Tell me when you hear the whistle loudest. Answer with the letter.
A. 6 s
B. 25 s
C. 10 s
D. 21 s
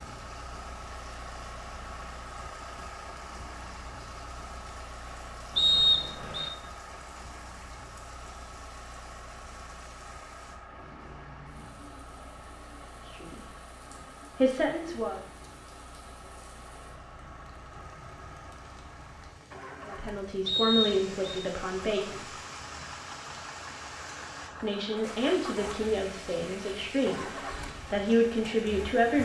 A.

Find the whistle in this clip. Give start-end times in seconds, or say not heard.
5.5-6.5, 20.4-21.4.